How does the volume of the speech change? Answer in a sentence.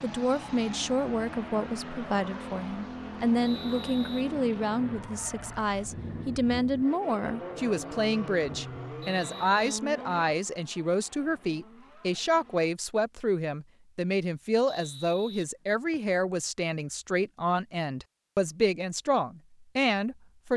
The loudness of the speech stays about the same.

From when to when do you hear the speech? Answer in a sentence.
The speech can be heard from 0.0 to 20.5 s.